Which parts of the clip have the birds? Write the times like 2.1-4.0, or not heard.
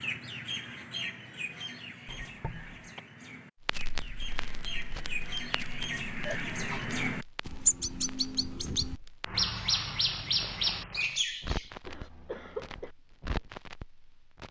0.0-11.7.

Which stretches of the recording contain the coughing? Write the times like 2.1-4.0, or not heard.
2.0-3.0, 6.2-7.0, 11.8-12.9.